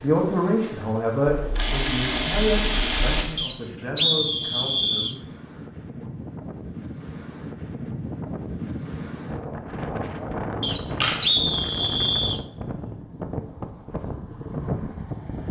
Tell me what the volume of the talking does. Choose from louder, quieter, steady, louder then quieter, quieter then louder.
quieter.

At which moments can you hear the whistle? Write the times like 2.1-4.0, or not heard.
3.4-5.2, 10.6-12.4.